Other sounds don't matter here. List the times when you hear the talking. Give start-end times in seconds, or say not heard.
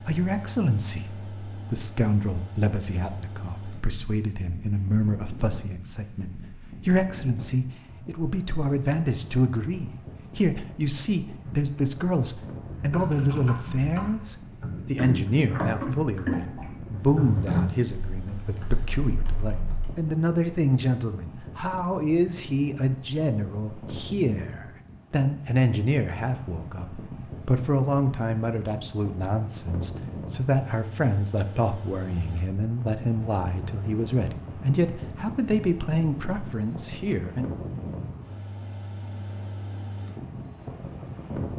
0.1-37.6.